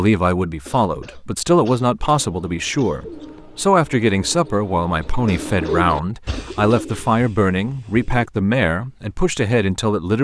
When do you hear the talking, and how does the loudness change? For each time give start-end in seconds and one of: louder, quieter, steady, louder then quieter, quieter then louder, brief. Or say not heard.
0.0-10.1 steady.